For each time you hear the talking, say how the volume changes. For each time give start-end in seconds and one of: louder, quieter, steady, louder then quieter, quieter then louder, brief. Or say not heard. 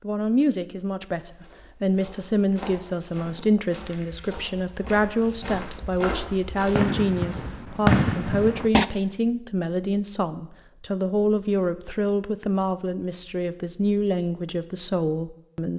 0.0-15.7 steady.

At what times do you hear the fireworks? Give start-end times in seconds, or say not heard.
5.2-8.8.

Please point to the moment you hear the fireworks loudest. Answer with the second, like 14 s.
8 s.